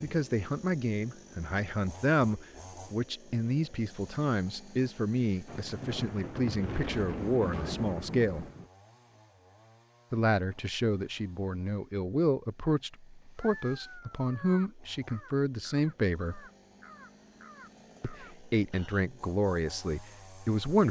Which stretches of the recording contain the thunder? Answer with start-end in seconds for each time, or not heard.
5.5-8.7.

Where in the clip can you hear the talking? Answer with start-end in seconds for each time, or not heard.
0.0-8.4, 10.1-16.4, 18.0-20.8.